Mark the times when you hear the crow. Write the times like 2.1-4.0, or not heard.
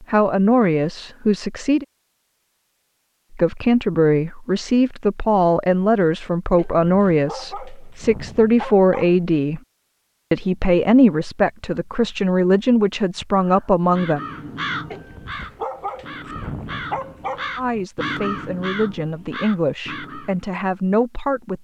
13.3-20.4.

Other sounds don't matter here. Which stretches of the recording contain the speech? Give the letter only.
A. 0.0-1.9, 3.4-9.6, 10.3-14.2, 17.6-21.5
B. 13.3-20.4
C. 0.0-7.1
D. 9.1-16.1
A.